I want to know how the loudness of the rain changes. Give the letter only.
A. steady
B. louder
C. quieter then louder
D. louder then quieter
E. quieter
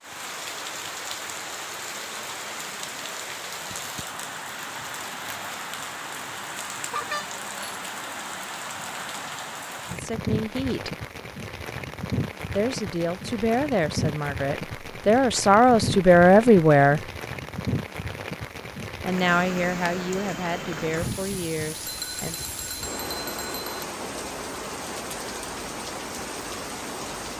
A.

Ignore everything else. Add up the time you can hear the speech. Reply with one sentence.
The speech can be heard for 9 seconds in total.